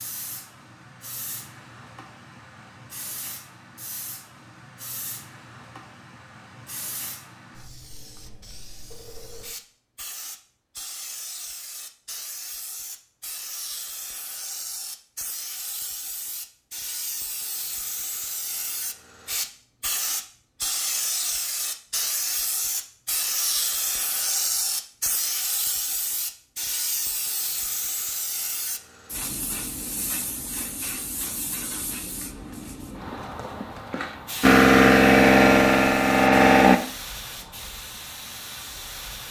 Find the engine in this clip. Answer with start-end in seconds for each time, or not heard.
34.4-36.8.